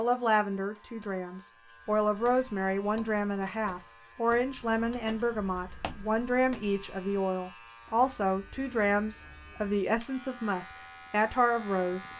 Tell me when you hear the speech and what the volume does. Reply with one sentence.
The speech can be heard from 0.0 to 12.1 s, at a steady volume.